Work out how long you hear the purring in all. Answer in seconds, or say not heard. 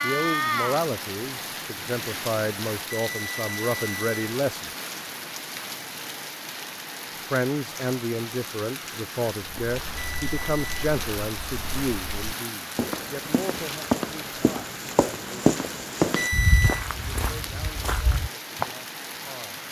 not heard.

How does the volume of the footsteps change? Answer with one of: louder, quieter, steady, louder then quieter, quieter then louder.
louder then quieter.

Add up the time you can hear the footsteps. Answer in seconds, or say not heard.
9 s.